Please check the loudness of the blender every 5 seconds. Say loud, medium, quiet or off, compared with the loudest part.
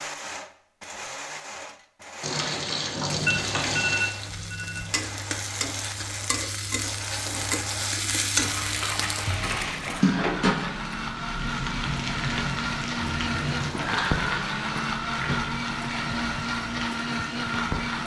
medium, medium, loud, loud.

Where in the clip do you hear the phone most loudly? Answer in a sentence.
The volume of the phone peaks at 4 seconds.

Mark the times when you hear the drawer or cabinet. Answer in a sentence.
You can't hear the drawer or cabinet here.